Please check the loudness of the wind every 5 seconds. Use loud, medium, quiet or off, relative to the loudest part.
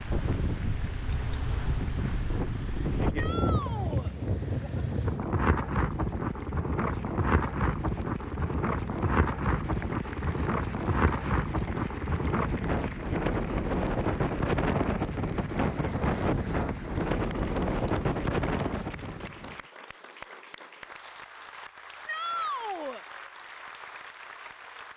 loud, loud, loud, loud, off.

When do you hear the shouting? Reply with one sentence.
The shouting can be heard from 3.1 to 4.1 s and from 22.1 to 23.1 s.